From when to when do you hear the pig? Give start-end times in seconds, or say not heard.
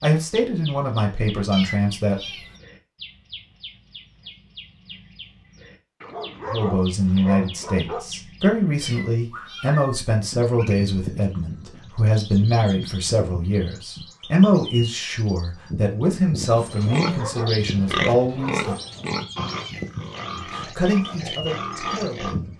16.6-22.4.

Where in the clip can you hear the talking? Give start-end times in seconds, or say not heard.
0.0-2.1, 6.5-18.8, 20.3-22.5.